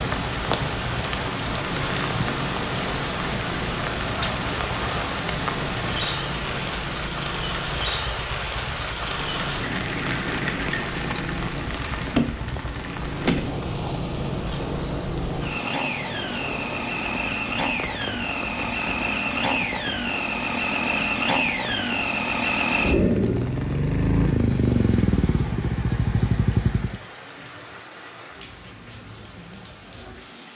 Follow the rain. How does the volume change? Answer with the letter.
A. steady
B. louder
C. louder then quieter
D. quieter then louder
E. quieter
E.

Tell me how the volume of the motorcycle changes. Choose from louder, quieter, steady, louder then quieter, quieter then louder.
louder.